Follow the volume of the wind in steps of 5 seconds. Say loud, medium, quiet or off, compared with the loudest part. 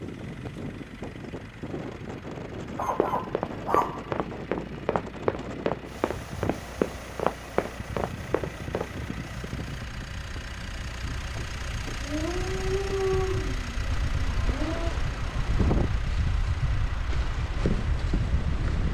medium, medium, medium, loud.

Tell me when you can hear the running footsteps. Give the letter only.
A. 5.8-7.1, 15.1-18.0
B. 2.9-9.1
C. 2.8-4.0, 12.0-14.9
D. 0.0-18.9
B.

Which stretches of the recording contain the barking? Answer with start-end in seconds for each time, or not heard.
2.8-4.0, 12.0-14.9.